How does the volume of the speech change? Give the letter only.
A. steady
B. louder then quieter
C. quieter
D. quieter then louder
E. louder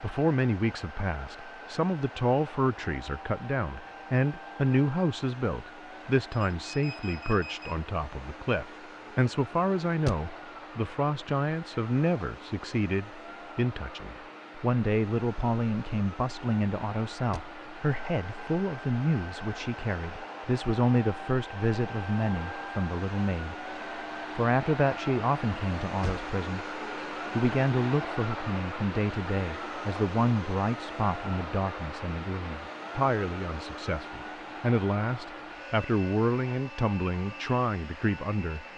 A.